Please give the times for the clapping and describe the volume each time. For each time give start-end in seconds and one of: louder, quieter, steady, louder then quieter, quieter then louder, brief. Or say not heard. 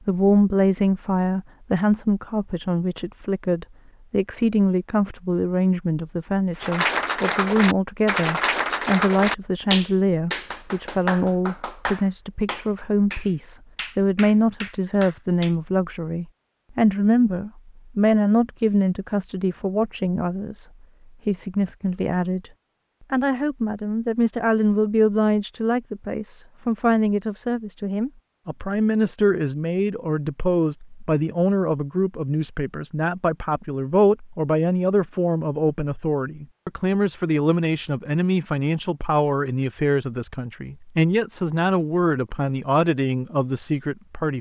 6.6-15.6 quieter.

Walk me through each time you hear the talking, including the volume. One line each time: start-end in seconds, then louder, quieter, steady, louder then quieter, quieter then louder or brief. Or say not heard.
0.1-20.6 steady
21.2-22.5 brief
23.1-44.3 steady.